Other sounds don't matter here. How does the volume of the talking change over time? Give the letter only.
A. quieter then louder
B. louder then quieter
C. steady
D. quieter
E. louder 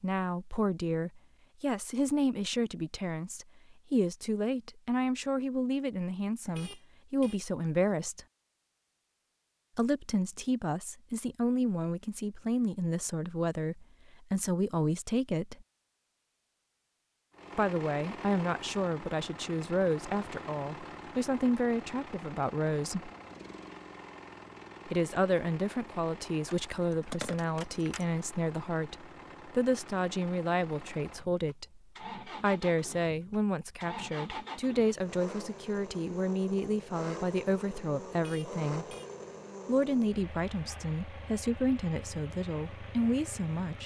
C.